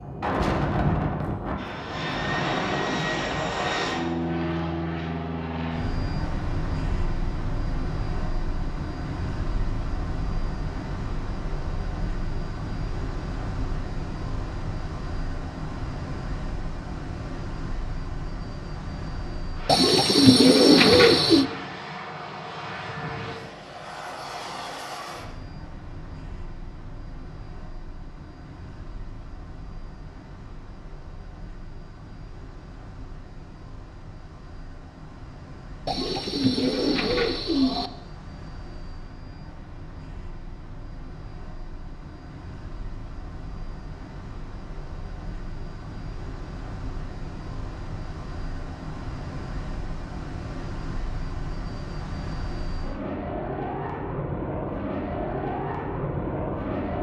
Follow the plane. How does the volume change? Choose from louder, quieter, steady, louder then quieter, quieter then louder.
quieter then louder.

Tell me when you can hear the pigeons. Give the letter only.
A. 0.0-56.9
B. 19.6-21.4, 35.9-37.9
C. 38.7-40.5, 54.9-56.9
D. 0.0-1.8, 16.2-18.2
B.